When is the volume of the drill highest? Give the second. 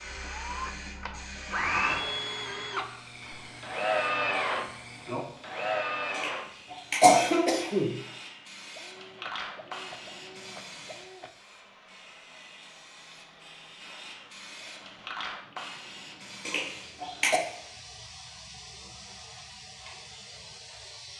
4 s.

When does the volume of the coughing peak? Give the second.
7 s.